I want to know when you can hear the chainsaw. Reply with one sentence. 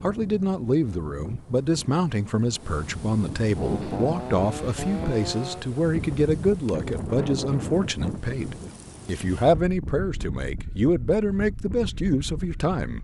You can hear the chainsaw from 3.5 to 5.7 s.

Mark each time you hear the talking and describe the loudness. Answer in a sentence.
The talking can be heard from 0.0 to 12.9 s, at a steady volume.